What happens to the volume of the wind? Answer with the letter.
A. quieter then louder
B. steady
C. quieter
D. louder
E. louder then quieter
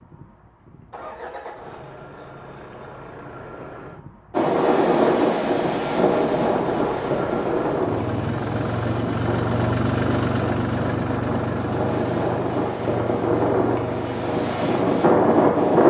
A.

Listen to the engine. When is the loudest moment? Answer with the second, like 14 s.
10 s.